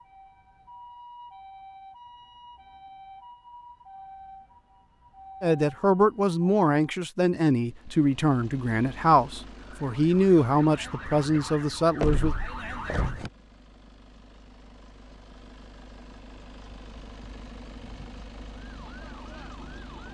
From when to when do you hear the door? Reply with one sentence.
You can hear the door from 12.0 to 13.3 s.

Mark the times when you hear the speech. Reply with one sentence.
You can hear the speech from 5.4 to 12.3 s.